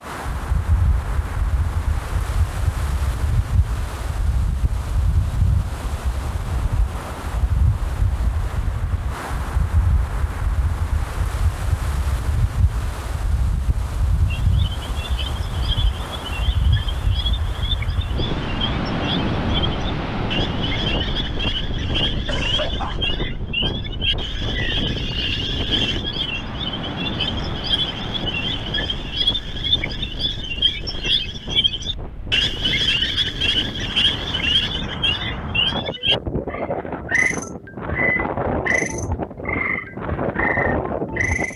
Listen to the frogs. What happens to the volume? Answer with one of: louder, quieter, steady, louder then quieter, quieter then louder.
louder.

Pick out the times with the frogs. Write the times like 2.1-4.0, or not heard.
14.3-41.5.